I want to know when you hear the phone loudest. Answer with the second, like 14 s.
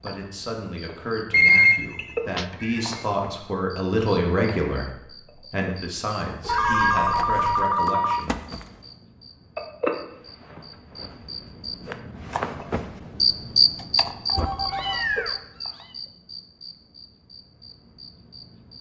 2 s.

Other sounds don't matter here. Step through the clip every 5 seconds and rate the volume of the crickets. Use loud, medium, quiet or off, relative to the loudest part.
medium, medium, loud, medium.